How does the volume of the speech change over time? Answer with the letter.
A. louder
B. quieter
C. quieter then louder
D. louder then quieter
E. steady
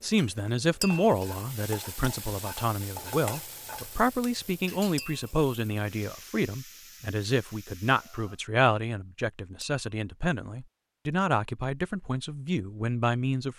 E.